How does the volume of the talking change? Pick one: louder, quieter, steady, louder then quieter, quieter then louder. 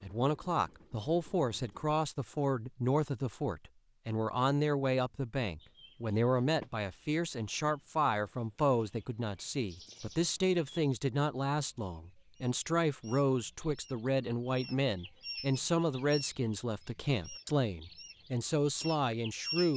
steady.